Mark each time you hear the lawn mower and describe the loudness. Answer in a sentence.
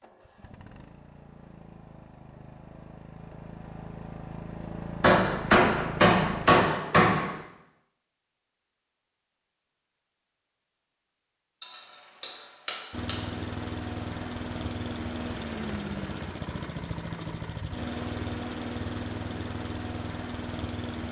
You can hear the lawn mower from 0.0 to 6.5 s, getting louder; and from 12.9 to 21.0 s, at a steady volume.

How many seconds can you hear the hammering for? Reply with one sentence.
The hammering can be heard for 4 seconds in total.